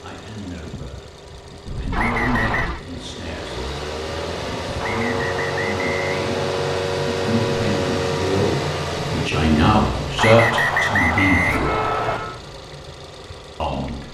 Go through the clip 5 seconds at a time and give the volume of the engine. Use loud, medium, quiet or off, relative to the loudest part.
medium, loud, medium.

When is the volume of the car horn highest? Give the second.
12 s.